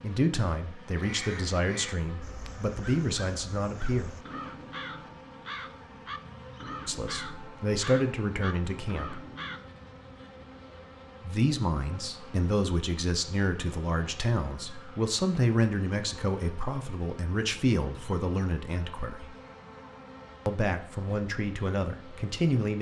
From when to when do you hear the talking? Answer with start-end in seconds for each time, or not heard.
0.0-4.2, 6.8-9.2, 11.2-19.4, 20.4-22.7.